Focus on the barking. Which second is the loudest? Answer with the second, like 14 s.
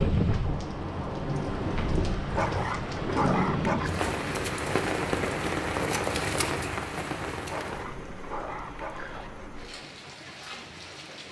3 s.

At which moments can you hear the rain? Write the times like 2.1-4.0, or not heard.
0.0-11.2.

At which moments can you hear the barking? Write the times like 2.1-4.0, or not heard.
2.3-3.9, 7.5-9.3.